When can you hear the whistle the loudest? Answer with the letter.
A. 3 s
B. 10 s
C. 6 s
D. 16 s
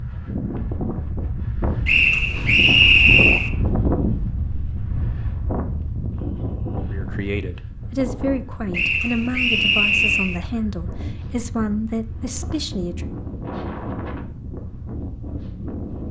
A.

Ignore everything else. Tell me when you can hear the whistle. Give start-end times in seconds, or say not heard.
1.9-3.5, 8.7-10.4.